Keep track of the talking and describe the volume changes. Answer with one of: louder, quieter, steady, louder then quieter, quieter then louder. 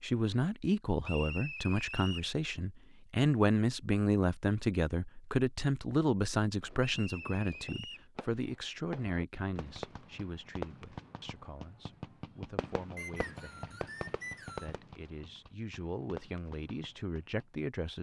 quieter then louder.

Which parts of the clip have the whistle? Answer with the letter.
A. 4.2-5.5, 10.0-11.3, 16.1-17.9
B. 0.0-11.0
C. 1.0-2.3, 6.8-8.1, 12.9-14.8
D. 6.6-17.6
C.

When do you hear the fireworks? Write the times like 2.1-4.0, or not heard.
6.6-17.6.